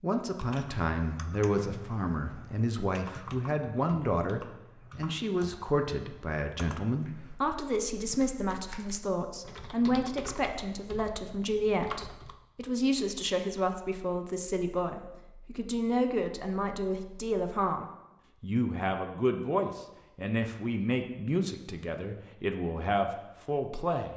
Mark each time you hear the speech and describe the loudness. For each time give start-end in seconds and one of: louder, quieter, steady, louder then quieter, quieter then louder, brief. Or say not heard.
0.0-24.1 steady.